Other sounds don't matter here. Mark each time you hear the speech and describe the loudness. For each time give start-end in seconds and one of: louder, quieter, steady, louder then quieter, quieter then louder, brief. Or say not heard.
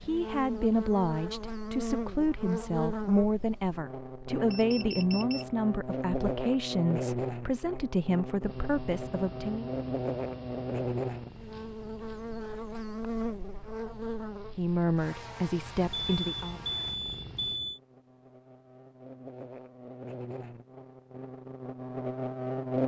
0.0-9.7 steady
14.6-16.6 brief.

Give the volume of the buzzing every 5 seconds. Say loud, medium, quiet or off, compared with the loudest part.
loud, loud, loud, quiet, loud.